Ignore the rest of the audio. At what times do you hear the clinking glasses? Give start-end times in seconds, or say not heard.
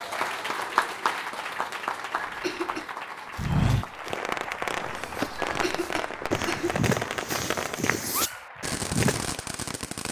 not heard.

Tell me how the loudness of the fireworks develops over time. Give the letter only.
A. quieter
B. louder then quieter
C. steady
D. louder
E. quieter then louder
C.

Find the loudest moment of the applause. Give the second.
1 s.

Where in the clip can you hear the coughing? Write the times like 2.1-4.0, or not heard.
2.2-2.9, 5.4-6.8.